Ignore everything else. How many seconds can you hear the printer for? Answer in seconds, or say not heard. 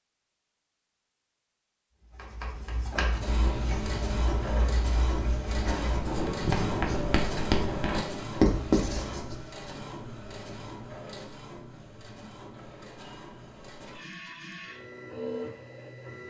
13 s.